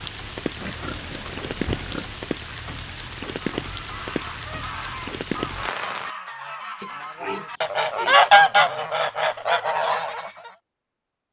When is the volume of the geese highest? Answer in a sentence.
The loudest moment of the geese is at 8 seconds.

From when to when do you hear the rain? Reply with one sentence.
You can hear the rain from 0.0 to 6.2 s.